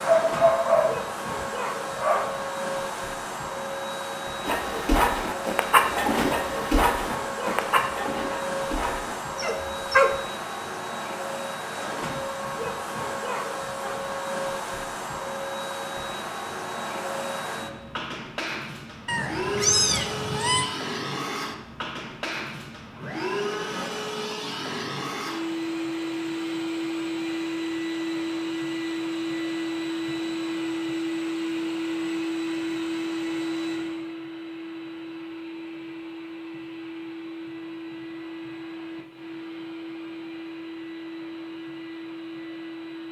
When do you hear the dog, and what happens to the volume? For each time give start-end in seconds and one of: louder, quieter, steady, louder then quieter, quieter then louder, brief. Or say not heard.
0.0-2.3 brief
4.5-10.2 quieter.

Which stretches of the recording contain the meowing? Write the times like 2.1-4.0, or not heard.
19.1-20.6.